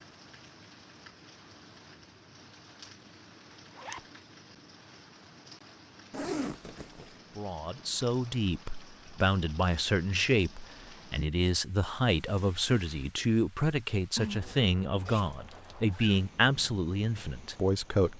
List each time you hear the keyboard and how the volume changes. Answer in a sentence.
You can't hear the keyboard here.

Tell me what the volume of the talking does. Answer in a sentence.
The volume of the talking stays about the same.